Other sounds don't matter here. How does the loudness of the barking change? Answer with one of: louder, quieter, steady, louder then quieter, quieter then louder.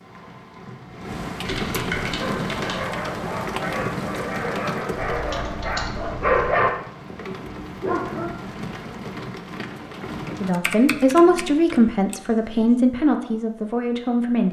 louder then quieter.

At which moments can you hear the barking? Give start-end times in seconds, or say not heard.
2.0-8.3.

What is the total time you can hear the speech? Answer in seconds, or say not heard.
4 s.